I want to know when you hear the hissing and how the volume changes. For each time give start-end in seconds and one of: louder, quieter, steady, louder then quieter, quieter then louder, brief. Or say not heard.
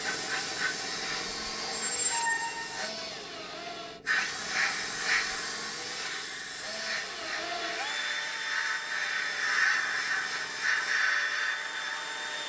0.0-12.4 louder.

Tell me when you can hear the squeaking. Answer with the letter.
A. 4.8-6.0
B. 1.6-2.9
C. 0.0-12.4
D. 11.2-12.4
B.